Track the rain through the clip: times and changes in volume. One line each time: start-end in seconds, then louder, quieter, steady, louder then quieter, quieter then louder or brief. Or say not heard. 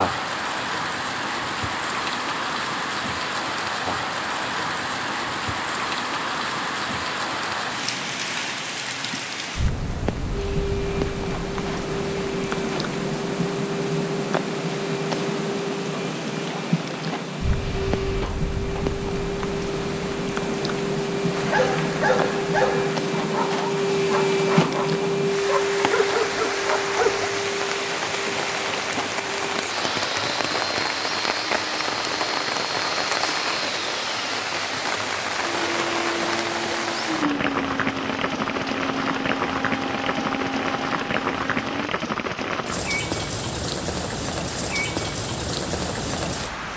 0.0-46.7 steady.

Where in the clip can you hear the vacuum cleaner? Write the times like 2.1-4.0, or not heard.
10.3-41.9.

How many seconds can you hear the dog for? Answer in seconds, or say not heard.
6 s.